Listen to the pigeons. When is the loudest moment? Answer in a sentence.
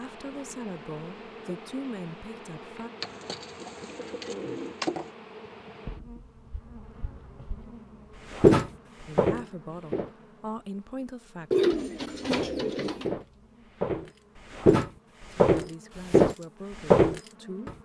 The loudest moment of the pigeons is at 12 seconds.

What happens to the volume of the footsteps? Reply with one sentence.
The loudness of the footsteps goes down, then up.